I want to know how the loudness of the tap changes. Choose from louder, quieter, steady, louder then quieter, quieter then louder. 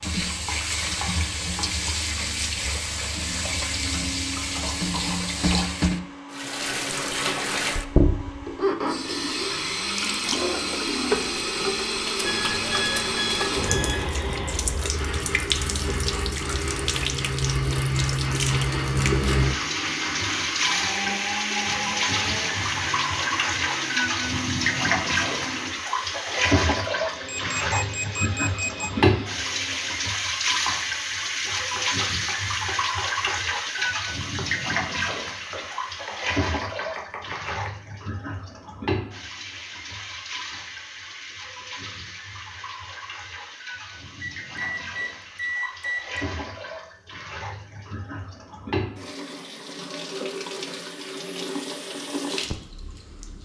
quieter.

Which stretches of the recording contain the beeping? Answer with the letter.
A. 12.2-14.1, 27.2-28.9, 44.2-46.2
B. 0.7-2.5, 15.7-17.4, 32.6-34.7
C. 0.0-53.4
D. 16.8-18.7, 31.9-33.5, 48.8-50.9
A.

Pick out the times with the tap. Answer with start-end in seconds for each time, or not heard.
0.0-53.4.